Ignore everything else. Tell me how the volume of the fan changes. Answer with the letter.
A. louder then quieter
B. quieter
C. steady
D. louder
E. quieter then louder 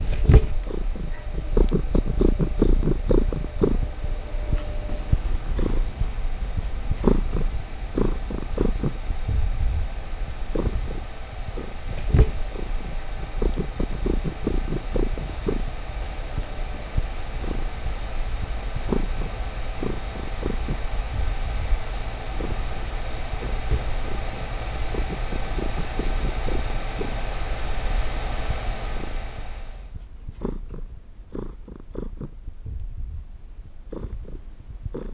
D.